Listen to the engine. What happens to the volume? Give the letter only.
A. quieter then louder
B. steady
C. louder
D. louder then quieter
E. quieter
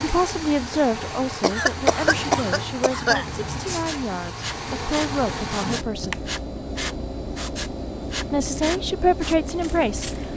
B.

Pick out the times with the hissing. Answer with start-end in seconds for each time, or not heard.
2.9-10.3.